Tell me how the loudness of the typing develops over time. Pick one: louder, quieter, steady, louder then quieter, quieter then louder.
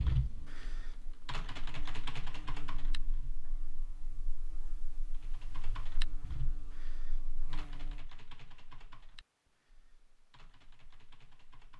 quieter.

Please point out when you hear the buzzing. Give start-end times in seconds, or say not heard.
0.2-8.1.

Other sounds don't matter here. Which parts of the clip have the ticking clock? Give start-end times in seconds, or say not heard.
not heard.